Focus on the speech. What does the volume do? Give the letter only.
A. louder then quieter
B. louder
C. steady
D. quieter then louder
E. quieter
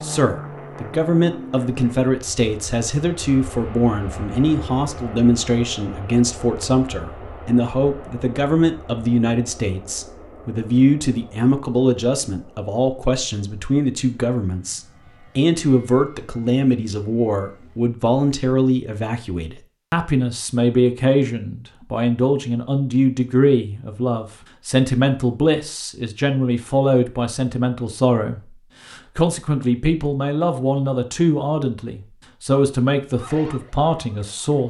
C.